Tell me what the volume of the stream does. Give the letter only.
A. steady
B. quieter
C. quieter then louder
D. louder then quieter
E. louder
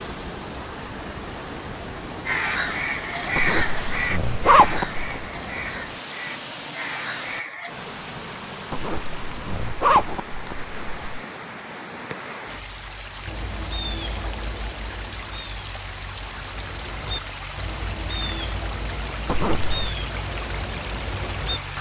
A.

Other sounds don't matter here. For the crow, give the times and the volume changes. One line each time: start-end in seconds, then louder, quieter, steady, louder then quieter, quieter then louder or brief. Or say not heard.
2.2-7.7 quieter
13.2-21.7 quieter then louder.